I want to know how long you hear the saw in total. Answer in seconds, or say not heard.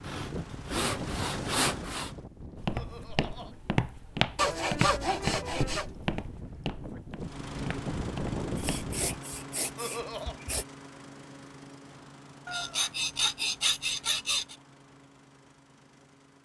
8 s.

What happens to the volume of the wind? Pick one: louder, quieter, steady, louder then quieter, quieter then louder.
quieter then louder.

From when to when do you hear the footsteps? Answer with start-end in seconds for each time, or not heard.
2.5-8.9.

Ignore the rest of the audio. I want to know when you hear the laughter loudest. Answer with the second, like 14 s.
10 s.